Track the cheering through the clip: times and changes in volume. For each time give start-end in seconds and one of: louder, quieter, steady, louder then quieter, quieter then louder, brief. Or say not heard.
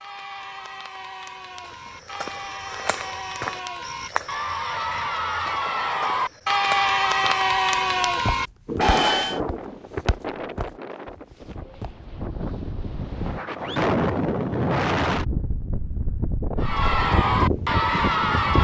0.0-9.4 louder
16.6-18.5 brief.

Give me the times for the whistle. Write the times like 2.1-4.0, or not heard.
not heard.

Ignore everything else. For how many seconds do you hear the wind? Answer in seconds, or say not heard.
10 s.